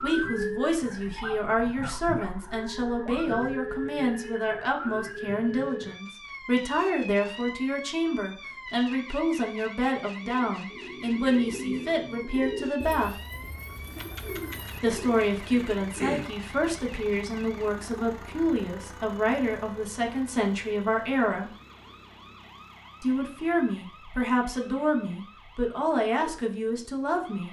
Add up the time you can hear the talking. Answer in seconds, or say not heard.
24 s.